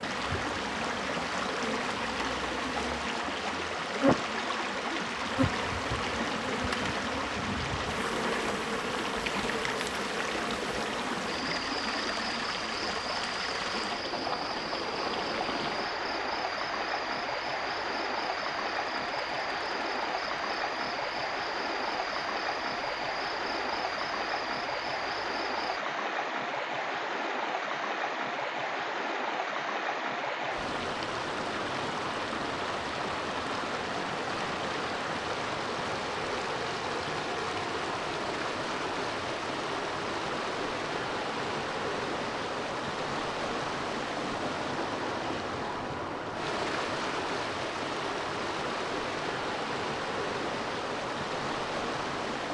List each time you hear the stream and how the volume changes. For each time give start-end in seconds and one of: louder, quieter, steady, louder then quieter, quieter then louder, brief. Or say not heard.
0.0-52.4 steady.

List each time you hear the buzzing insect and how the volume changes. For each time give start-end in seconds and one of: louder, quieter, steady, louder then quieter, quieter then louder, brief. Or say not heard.
0.0-25.8 quieter.